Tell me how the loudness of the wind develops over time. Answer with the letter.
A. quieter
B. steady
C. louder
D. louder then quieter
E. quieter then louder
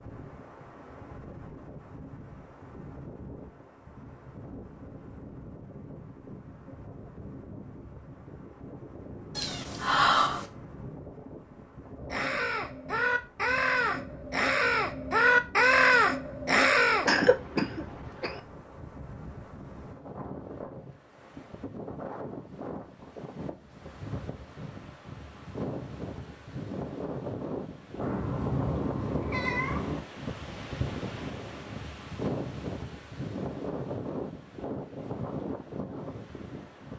C.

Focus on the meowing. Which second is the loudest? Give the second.
10 s.